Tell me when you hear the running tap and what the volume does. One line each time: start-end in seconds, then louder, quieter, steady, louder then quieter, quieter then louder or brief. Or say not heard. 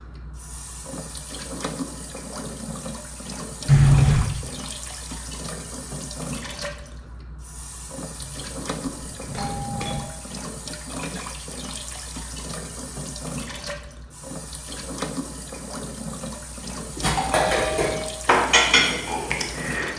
0.0-19.9 steady.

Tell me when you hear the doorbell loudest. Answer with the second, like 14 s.
4 s.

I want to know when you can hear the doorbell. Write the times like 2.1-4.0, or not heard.
3.6-4.3, 8.2-10.1, 17.1-18.1.